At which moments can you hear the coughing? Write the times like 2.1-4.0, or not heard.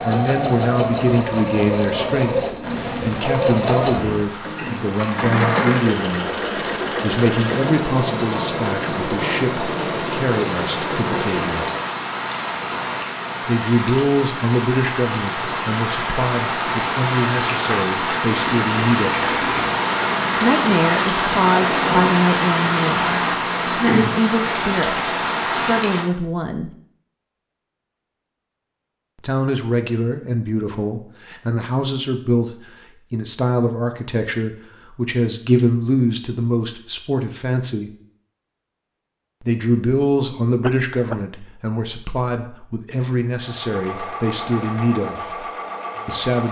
40.6-41.1.